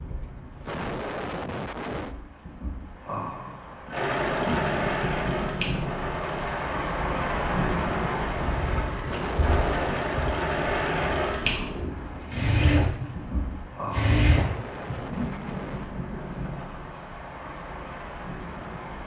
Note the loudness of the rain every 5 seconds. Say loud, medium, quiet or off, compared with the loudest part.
medium, loud, medium, medium.